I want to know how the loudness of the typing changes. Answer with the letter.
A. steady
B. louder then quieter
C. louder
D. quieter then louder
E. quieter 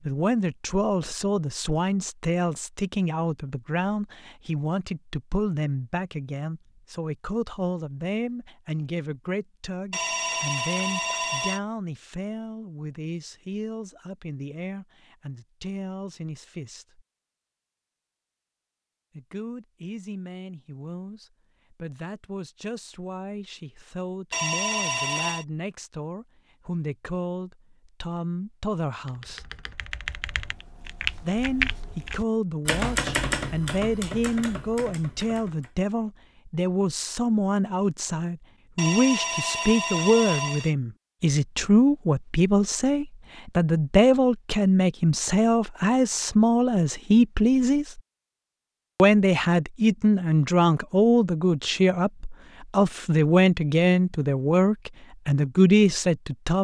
B.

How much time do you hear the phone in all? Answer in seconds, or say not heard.
5 s.